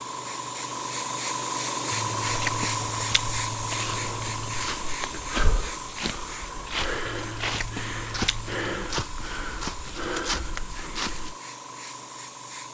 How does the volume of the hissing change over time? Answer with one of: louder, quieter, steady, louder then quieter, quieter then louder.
quieter.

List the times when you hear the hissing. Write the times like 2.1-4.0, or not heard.
0.0-12.6.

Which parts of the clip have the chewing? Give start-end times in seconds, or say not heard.
1.9-4.8, 7.0-8.7.